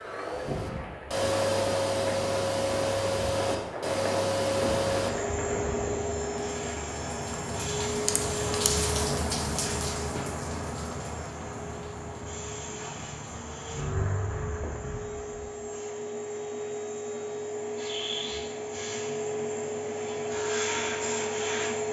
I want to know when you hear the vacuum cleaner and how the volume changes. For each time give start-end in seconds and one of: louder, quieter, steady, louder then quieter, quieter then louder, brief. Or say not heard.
0.0-21.8 quieter then louder.